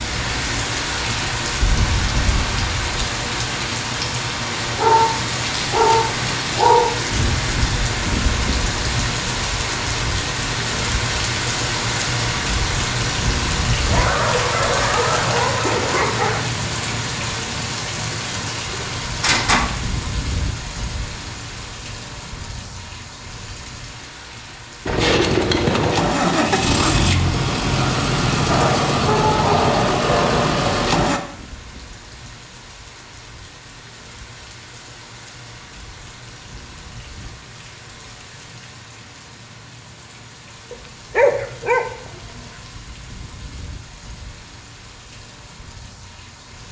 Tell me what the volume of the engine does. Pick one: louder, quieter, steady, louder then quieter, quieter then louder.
steady.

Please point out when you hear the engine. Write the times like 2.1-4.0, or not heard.
24.9-31.2.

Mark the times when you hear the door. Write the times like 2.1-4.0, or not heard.
18.7-19.6.